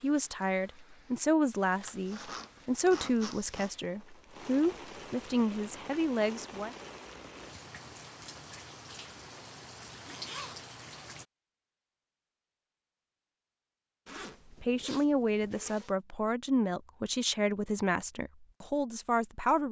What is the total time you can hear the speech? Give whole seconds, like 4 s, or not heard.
12 s.